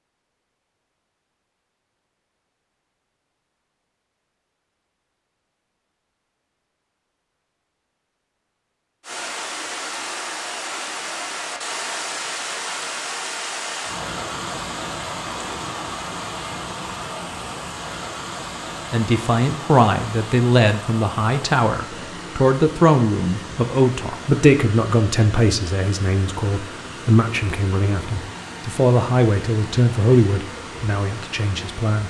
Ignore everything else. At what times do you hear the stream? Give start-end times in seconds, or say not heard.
9.0-32.0.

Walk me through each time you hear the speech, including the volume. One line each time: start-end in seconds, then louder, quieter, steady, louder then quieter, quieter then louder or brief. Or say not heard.
18.9-32.0 steady.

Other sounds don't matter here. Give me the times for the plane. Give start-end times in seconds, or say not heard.
not heard.